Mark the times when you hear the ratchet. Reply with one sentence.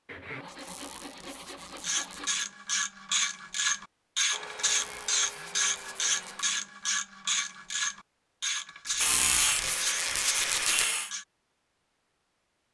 You can hear the ratchet from 1.8 to 11.2 s.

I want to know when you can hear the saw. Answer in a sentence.
The saw can be heard from 0.1 to 2.4 s, from 4.3 to 6.5 s and from 9.0 to 11.1 s.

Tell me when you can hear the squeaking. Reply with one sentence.
You can hear the squeaking from 0.5 to 2.4 s, from 4.6 to 6.5 s and from 8.8 to 10.8 s.